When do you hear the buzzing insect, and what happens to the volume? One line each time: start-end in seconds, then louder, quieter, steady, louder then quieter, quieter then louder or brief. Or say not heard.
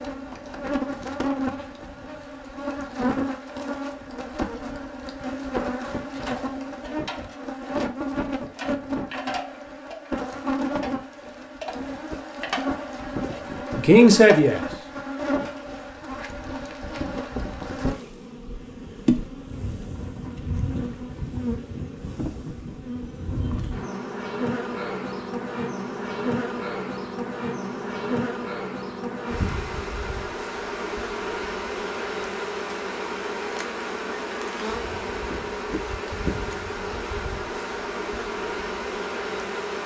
0.0-39.8 steady.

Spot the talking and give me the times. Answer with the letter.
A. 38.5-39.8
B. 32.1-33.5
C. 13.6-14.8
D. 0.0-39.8
C.